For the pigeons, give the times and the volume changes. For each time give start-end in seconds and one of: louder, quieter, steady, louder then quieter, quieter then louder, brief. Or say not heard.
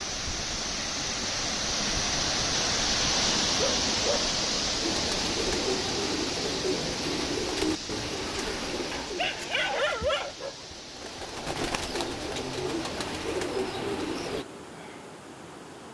4.8-14.4 quieter then louder.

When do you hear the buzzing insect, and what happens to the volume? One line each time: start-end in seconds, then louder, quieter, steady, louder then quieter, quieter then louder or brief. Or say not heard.
not heard.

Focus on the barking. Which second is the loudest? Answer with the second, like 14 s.
10 s.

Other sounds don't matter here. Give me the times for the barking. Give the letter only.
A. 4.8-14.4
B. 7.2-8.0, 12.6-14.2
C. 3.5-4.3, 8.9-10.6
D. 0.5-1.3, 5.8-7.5
C.